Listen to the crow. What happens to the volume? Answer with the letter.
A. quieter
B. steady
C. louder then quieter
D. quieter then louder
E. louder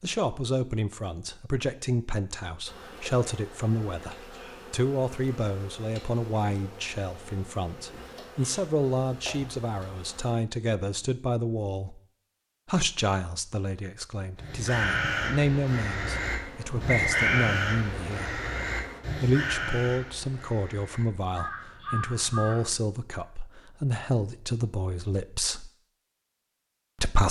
A.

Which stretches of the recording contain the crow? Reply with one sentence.
The crow can be heard from 14.3 to 22.6 s.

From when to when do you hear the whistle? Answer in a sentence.
The whistle can be heard from 16.9 to 17.5 s.